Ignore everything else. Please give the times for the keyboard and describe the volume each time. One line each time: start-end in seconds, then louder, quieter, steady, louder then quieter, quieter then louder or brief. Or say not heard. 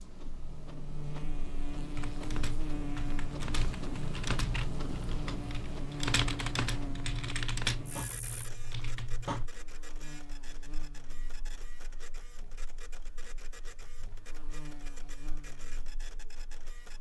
1.9-9.5 louder then quieter.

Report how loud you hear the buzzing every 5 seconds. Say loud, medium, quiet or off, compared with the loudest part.
loud, loud, quiet, quiet.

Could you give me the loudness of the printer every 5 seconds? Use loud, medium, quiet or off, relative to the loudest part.
loud, loud, medium, medium.